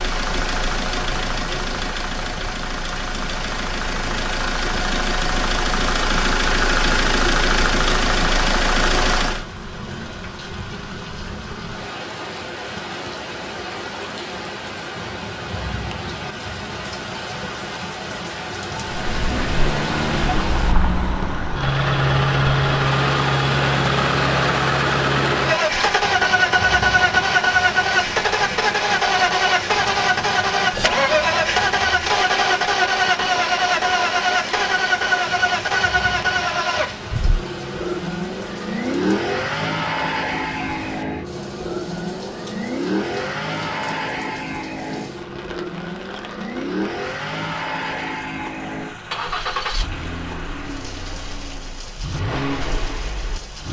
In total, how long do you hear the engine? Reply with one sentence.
The engine can be heard for 44 seconds in total.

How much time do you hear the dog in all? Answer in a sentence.
You can't hear the dog here.